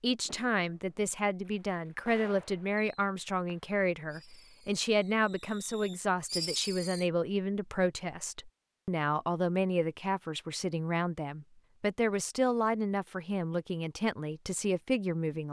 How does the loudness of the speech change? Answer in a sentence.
The volume of the speech stays about the same.